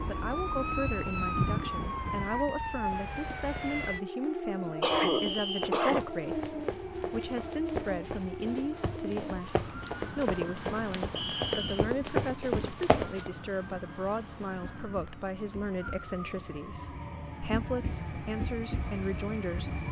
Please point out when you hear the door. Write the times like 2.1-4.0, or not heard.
not heard.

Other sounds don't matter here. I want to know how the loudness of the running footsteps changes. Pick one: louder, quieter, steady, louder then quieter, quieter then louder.
louder.